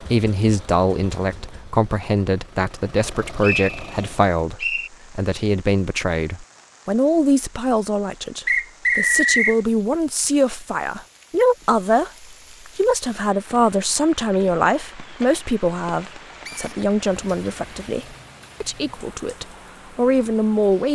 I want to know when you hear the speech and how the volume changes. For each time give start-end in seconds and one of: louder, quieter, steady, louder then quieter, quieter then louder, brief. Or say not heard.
0.0-20.8 steady.